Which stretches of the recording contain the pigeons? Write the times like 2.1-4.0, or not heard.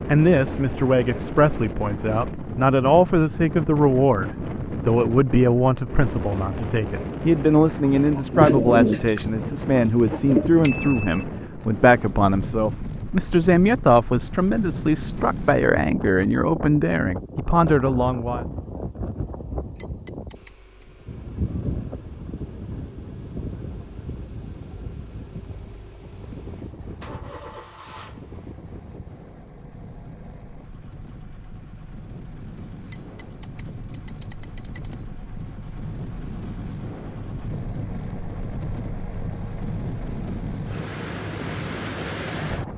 8.1-10.5.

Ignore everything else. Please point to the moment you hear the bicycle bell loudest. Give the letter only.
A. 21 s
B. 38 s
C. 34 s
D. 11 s
D.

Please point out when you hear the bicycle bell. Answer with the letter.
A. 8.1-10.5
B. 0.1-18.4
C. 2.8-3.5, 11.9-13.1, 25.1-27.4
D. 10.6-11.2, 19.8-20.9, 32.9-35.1
D.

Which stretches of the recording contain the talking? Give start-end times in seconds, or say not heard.
0.1-18.4.